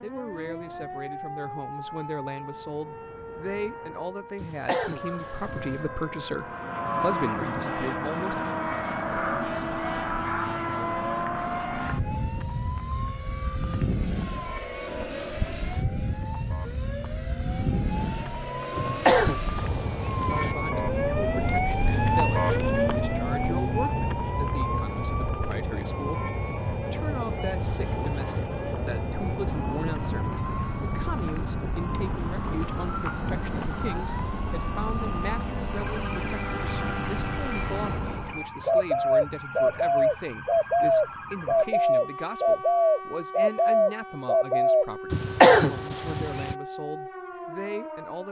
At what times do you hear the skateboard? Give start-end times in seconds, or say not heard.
not heard.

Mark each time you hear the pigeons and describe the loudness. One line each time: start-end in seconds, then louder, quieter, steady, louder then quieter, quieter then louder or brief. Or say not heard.
38.6-44.9 steady.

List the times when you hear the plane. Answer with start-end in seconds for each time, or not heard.
6.3-38.5.